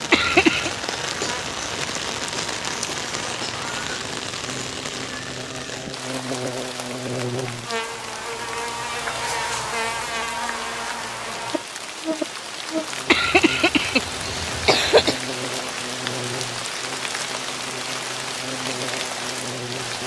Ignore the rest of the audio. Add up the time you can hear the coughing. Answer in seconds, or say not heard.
3 s.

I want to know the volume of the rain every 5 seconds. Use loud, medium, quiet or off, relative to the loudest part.
loud, medium, loud, loud.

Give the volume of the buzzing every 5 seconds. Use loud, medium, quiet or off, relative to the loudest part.
medium, loud, loud, medium.